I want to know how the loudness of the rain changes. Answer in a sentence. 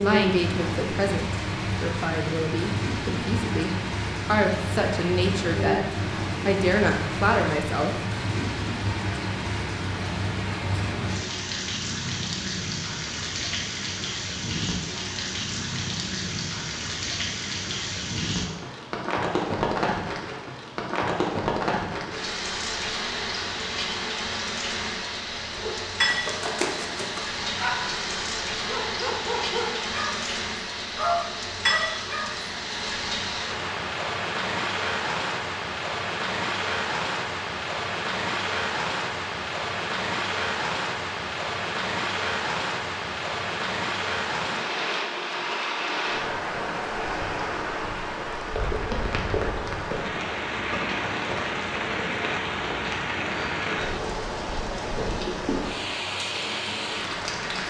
The volume of the rain stays about the same.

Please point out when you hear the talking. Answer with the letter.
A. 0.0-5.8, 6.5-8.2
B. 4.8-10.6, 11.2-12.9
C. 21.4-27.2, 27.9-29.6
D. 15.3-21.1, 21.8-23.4
A.